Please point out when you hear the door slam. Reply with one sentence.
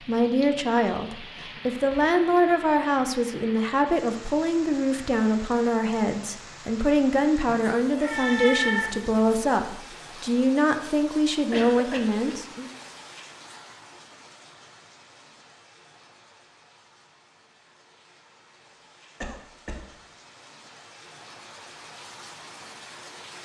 You can't hear the door slam here.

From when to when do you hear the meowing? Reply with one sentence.
The meowing can be heard from 7.5 to 9.4 s.